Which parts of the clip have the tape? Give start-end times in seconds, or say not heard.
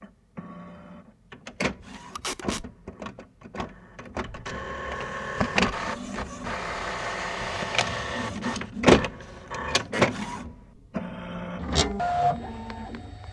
2.1-2.6.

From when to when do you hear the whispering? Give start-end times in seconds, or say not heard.
not heard.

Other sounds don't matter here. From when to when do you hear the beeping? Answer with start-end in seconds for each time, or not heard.
not heard.